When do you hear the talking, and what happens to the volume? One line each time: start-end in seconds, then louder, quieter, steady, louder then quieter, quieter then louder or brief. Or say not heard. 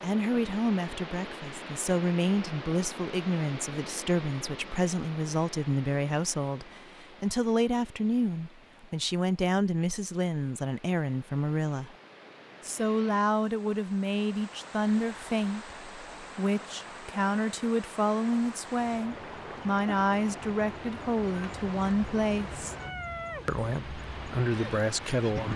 0.0-11.9 steady
12.6-22.8 steady
23.4-25.5 brief.